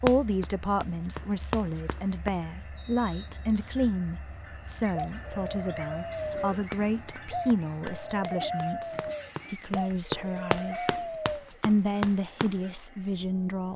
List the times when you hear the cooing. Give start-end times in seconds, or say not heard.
4.8-11.6.